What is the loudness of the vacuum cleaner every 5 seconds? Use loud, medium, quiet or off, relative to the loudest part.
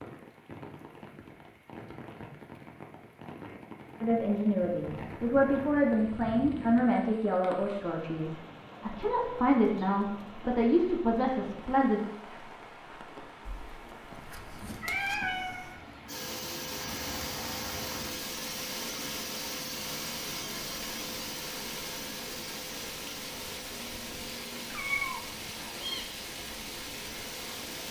off, off, off, loud, loud, medium.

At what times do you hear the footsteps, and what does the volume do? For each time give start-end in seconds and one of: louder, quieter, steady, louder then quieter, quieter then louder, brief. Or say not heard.
not heard.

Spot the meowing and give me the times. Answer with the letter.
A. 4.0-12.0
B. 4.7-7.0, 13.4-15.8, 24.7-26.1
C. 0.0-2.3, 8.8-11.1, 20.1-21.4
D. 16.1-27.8
B.